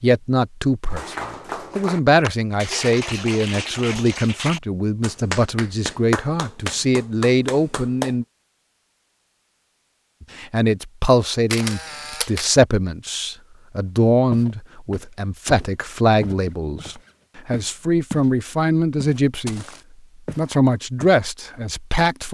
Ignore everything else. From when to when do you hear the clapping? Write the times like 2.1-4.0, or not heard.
0.8-8.2.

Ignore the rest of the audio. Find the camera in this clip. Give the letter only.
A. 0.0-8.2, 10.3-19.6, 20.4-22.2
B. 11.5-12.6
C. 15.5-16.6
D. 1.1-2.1
B.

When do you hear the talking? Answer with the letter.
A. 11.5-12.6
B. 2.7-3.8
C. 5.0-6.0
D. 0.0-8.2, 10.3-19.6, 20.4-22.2
D.